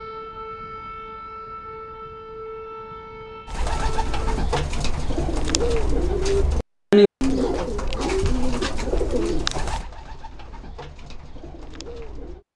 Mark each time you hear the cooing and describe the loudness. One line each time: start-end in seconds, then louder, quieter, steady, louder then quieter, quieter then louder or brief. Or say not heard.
3.5-12.4 louder then quieter.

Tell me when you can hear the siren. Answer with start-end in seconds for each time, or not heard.
0.0-4.2.